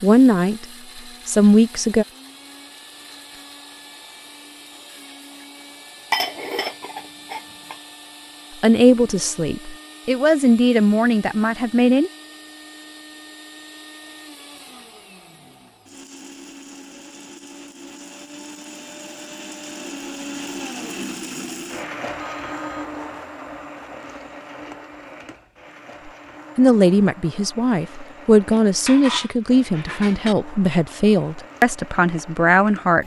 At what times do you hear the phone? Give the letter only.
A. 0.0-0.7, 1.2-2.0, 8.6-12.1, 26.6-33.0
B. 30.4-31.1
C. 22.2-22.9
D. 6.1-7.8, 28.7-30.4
C.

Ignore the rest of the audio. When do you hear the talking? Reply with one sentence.
You can hear the talking from 0.0 to 0.7 s, from 1.2 to 2.0 s, from 8.6 to 12.1 s and from 26.6 to 33.0 s.